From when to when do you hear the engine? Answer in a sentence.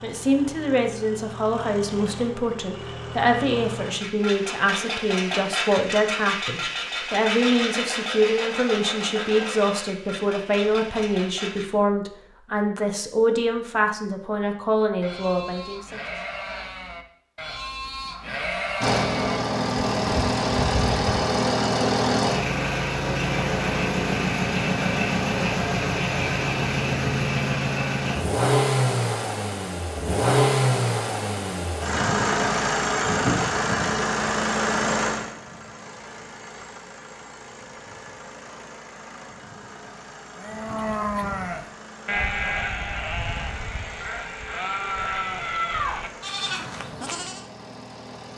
The engine can be heard from 0.0 to 11.7 s and from 18.8 to 48.3 s.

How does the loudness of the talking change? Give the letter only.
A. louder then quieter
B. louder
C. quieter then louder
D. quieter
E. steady
E.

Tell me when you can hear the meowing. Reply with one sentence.
The meowing can't be heard in this clip.